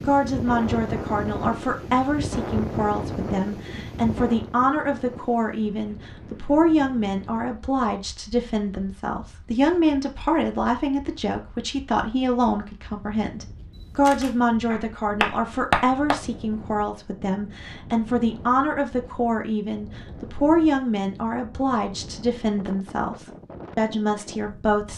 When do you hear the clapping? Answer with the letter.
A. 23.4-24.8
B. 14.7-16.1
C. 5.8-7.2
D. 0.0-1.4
B.